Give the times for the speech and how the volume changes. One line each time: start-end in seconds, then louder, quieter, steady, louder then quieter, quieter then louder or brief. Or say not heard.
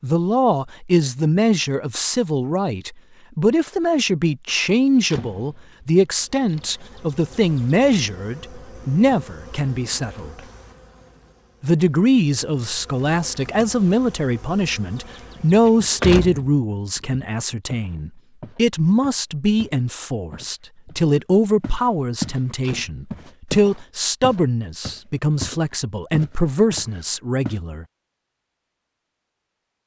0.0-10.3 steady
11.6-27.9 steady.